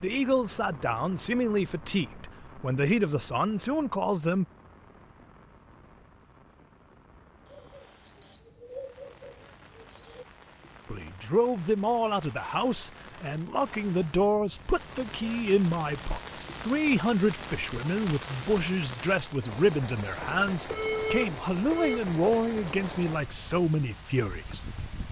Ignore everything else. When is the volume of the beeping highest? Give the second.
21 s.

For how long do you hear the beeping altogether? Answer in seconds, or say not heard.
4 s.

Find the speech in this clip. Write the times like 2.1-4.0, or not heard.
0.0-4.5, 10.8-25.0.